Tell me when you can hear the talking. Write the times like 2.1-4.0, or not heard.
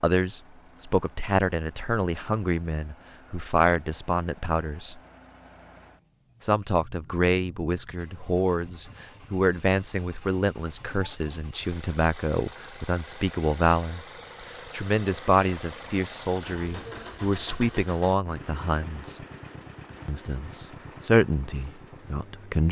0.0-5.0, 6.4-14.0, 14.7-19.2, 20.1-22.6.